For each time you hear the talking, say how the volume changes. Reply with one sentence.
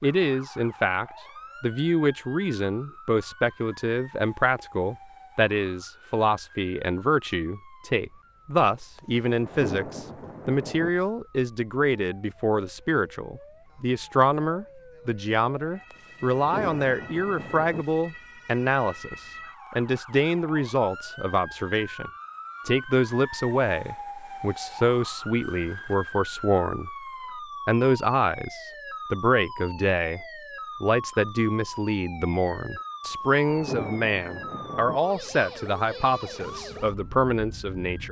The talking can be heard from 0.0 to 26.9 s, at a steady volume; and from 27.6 to 38.0 s, at a steady volume.